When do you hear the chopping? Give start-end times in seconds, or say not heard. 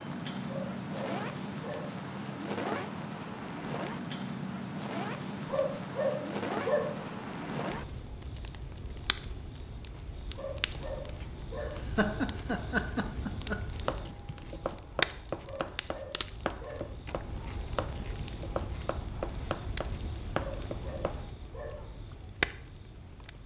13.8-21.3.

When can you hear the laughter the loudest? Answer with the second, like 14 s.
12 s.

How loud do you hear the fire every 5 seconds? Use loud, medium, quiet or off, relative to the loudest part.
loud, loud, medium, loud, loud.